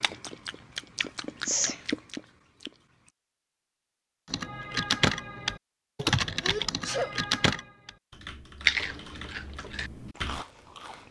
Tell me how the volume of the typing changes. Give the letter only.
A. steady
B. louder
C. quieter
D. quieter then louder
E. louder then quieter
C.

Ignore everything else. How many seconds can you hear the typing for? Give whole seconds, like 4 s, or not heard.
6 s.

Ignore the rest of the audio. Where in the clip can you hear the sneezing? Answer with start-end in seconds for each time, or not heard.
1.0-1.8, 6.4-7.2.